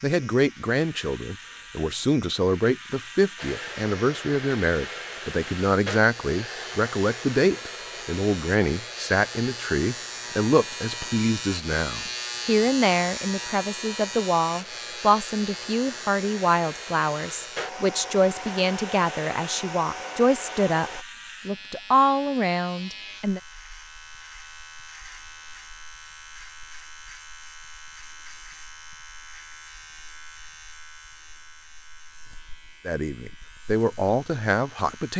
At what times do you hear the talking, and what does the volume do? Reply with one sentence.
The talking can be heard from 0.0 to 23.4 s, at a steady volume; and briefly from 32.9 to 35.1 s.